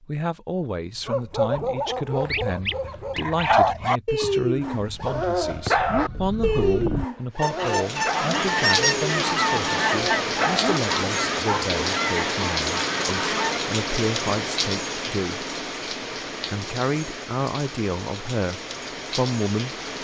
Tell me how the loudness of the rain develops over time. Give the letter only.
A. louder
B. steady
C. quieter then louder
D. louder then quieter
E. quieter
E.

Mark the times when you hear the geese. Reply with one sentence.
You can hear the geese from 2.2 to 13.6 s.